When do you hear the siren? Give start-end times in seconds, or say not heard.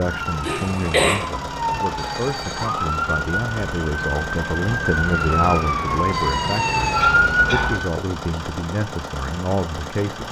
0.0-7.9.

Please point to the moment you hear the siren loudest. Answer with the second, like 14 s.
7 s.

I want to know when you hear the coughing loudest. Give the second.
1 s.